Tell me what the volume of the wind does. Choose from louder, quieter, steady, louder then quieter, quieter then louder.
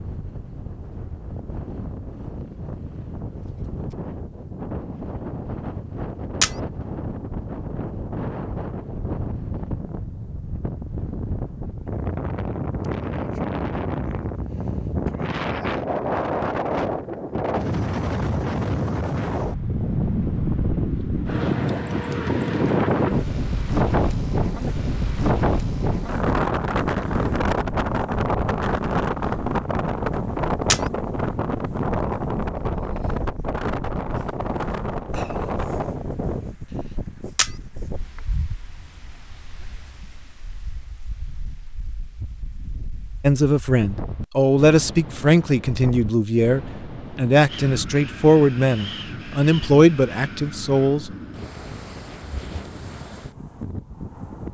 louder then quieter.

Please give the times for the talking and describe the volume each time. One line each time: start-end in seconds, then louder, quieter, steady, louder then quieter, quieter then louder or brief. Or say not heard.
43.2-51.1 steady.